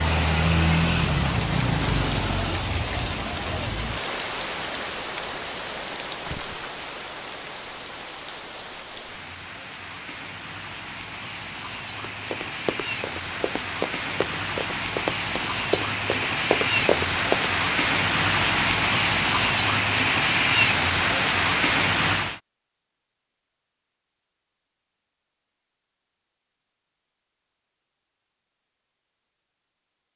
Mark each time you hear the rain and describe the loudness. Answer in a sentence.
The rain can be heard from 0.0 to 22.4 s, getting quieter then louder.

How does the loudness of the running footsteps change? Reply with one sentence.
The volume of the running footsteps goes up.